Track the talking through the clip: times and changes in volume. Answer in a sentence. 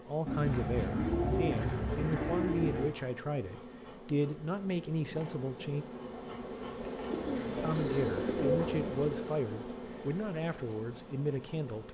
The talking can be heard from 0.0 to 5.8 s, at a steady volume; and from 7.6 to 11.8 s, at a steady volume.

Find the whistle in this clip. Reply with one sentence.
You can't hear the whistle here.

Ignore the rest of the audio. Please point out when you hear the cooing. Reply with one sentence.
You can hear the cooing from 0.2 to 2.9 s and from 7.1 to 9.2 s.